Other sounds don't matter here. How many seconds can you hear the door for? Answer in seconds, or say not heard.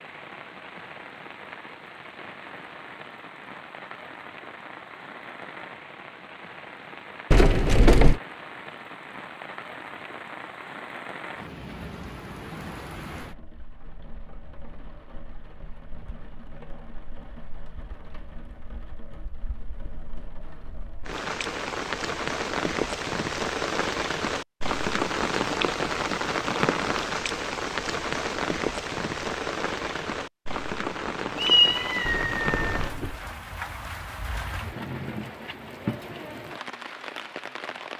2 s.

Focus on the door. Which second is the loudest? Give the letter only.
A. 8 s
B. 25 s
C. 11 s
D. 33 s
A.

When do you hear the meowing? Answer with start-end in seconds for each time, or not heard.
31.4-32.9.